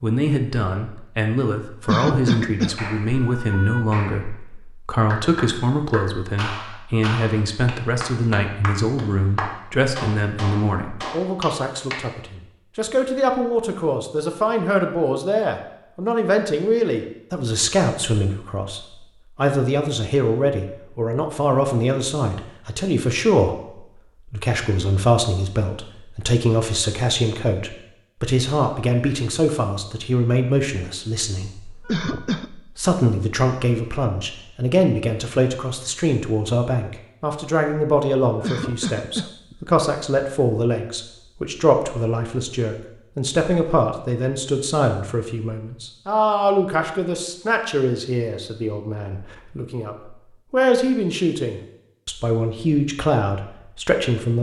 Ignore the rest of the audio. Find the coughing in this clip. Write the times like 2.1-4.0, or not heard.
1.9-3.9, 31.9-32.5, 38.4-39.5.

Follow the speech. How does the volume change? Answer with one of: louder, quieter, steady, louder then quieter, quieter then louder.
steady.